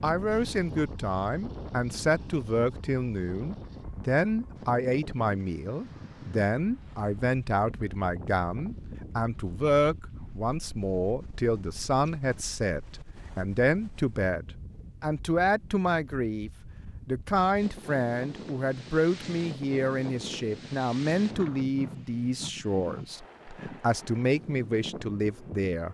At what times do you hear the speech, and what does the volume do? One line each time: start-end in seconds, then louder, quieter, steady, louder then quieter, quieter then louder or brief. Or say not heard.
0.0-25.8 steady.